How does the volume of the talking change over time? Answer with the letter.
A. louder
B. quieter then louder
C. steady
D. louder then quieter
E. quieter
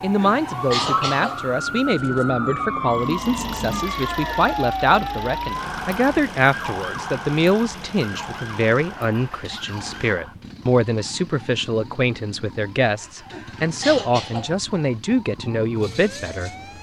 C.